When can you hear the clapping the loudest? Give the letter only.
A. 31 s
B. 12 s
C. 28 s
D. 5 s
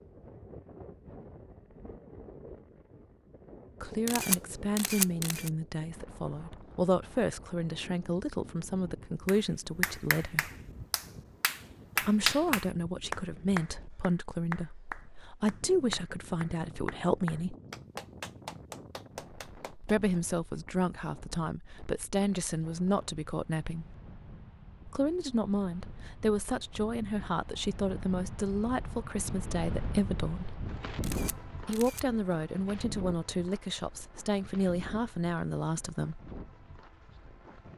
B.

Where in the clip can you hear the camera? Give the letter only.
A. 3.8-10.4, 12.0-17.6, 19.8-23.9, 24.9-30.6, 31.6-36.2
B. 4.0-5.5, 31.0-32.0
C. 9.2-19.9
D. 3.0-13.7
B.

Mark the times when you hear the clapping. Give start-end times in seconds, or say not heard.
9.2-19.9.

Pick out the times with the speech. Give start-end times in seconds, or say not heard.
3.8-10.4, 12.0-17.6, 19.8-23.9, 24.9-30.6, 31.6-36.2.